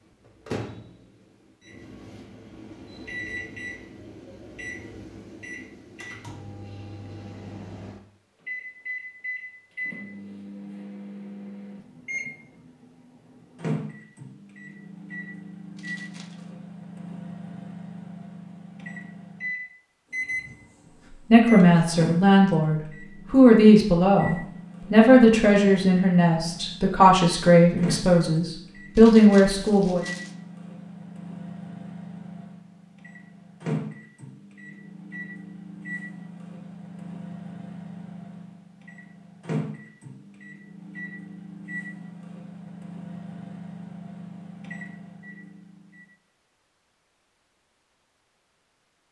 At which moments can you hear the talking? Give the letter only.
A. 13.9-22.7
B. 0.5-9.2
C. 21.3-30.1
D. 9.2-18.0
C.